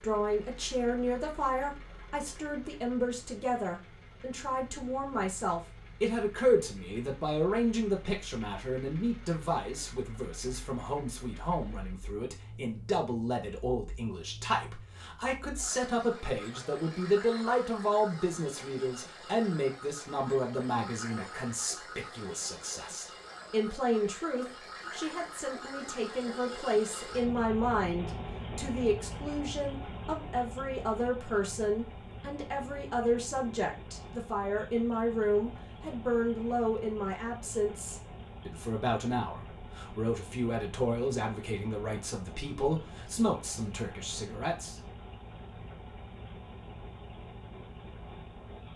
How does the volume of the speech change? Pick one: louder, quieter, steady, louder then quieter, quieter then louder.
steady.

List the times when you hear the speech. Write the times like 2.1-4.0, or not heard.
0.0-44.8.